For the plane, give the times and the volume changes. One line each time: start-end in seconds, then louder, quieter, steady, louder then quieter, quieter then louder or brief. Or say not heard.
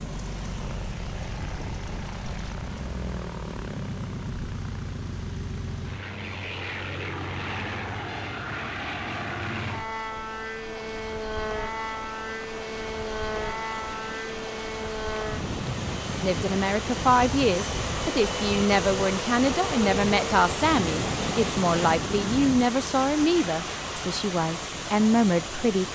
0.0-22.6 steady.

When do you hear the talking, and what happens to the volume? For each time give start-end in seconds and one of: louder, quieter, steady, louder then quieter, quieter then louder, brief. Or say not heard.
16.1-25.9 steady.